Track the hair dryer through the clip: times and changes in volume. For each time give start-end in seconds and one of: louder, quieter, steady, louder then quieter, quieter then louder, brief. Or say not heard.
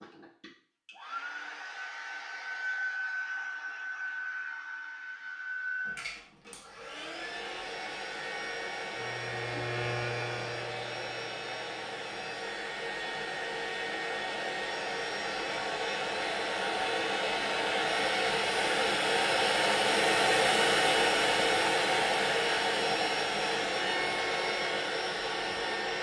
0.0-25.9 louder.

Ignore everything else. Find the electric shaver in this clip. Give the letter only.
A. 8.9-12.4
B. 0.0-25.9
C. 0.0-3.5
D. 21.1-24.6
A.